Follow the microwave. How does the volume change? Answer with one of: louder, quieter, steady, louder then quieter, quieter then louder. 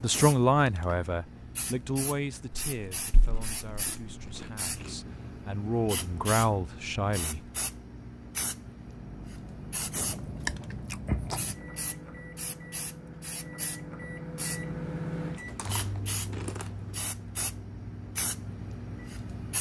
louder then quieter.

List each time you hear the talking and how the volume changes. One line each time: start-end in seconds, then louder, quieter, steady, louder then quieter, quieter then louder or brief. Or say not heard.
0.0-7.4 quieter then louder.